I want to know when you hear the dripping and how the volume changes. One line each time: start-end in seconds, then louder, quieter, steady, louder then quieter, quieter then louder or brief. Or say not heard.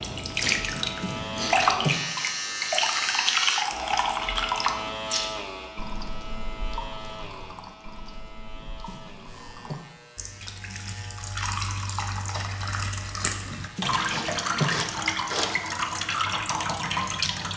0.0-17.5 quieter then louder.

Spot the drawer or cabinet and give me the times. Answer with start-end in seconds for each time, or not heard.
0.7-2.0, 8.6-9.8, 13.4-14.8.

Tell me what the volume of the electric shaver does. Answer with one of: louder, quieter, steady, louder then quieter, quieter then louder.
quieter.